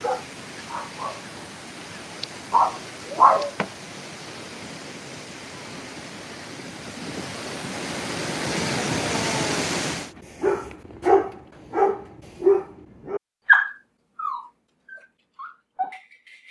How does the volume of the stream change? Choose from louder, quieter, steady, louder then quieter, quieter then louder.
louder.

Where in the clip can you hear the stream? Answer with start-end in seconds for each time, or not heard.
0.0-10.2.